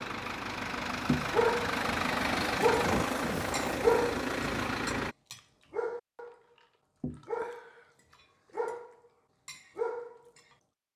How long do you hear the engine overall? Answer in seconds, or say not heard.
5 s.